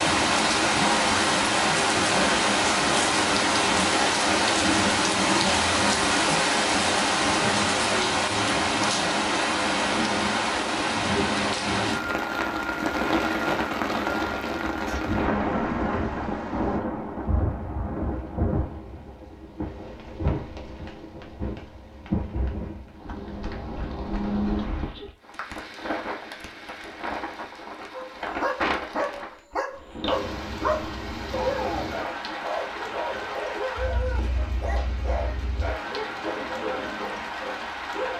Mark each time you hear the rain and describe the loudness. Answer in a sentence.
The rain can be heard from 0.0 to 38.1 s, getting quieter.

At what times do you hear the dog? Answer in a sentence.
The dog can be heard from 27.9 to 38.1 s.